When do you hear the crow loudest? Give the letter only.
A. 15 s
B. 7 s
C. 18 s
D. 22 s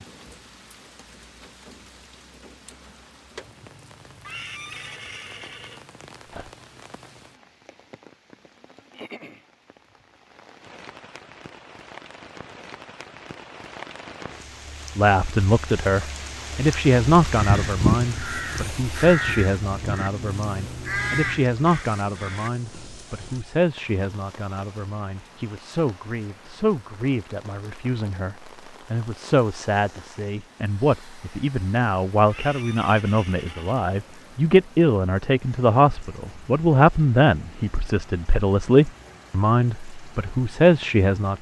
C.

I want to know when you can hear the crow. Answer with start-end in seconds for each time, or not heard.
17.4-22.5.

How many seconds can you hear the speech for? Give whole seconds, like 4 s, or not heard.
26 s.